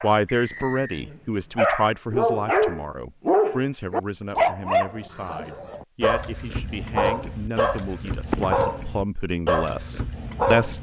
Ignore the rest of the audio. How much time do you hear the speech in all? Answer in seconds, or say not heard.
11 s.